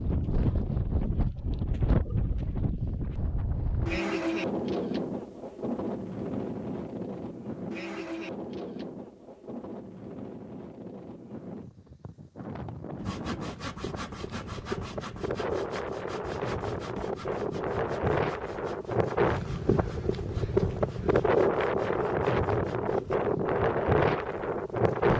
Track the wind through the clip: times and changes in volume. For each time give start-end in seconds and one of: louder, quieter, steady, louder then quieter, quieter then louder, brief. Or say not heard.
0.0-25.1 quieter then louder.